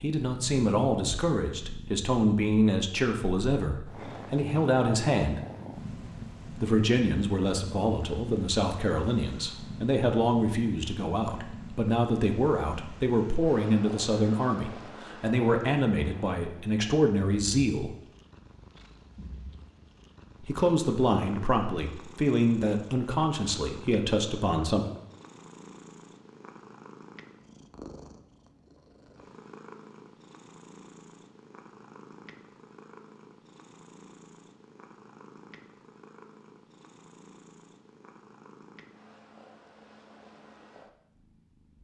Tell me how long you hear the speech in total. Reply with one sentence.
You can hear the speech for 21 seconds altogether.